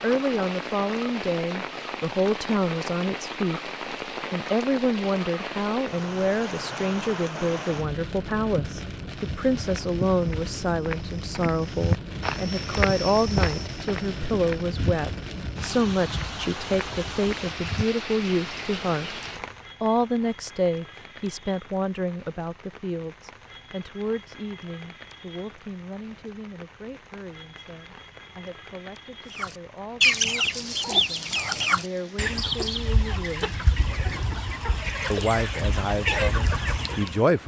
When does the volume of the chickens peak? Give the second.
30 s.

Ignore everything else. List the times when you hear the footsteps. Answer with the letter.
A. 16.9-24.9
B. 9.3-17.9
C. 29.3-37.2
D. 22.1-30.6
B.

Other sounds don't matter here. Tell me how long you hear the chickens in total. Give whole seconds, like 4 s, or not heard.
8 s.